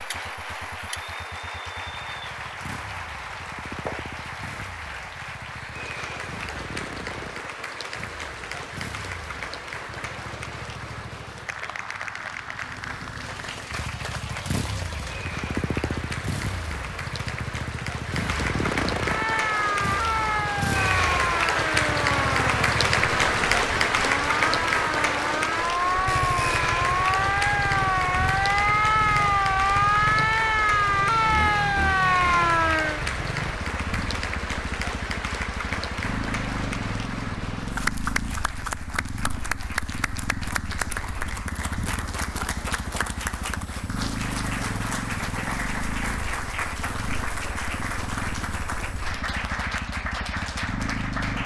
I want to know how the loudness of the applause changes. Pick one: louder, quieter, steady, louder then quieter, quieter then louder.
louder then quieter.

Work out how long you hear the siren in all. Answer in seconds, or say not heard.
14 s.